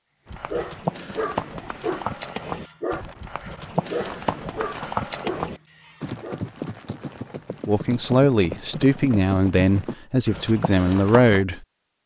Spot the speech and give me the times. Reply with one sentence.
You can hear the speech from 7.7 to 11.6 s.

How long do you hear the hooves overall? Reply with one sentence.
You can hear the hooves for 11 seconds altogether.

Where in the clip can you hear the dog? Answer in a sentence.
The dog can be heard from 0.5 to 6.4 s.